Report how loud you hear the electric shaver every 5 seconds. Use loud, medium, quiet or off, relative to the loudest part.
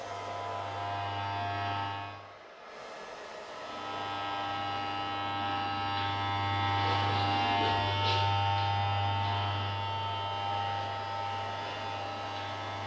medium, loud, medium.